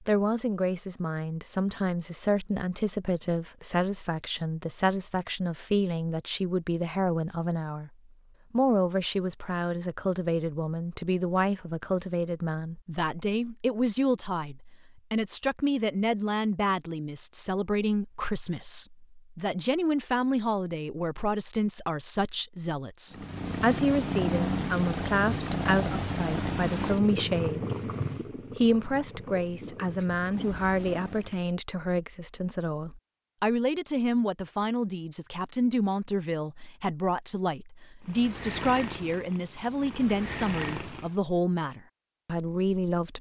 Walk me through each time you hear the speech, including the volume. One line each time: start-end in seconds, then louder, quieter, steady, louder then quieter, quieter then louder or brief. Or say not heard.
0.1-7.9 steady
8.5-27.9 steady
28.6-43.1 steady.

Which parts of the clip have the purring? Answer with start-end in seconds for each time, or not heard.
23.1-31.5, 38.0-41.2.